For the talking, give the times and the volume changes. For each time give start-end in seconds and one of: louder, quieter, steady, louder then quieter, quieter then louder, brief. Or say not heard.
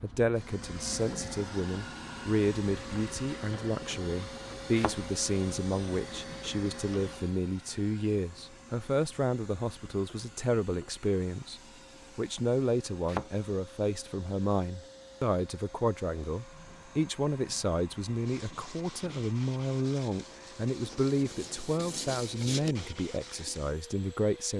0.0-24.5 steady.